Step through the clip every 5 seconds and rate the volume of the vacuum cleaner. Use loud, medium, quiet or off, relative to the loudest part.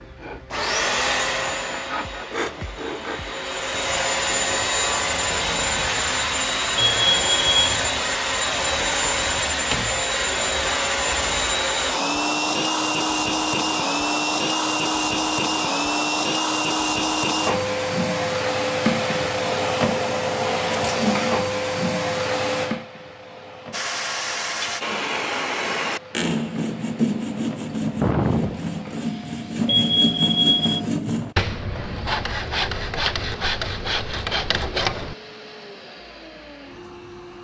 loud, loud, loud, loud, loud, quiet, quiet, quiet.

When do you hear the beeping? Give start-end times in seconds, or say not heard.
6.8-7.8, 29.6-30.8.